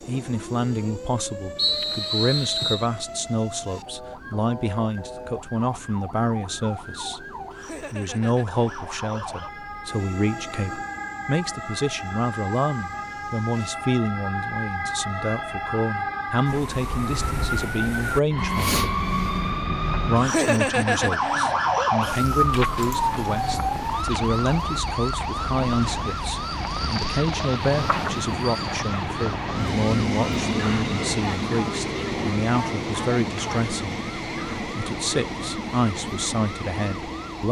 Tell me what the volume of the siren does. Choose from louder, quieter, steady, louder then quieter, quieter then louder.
louder then quieter.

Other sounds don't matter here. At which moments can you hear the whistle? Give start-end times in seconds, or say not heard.
1.6-2.9.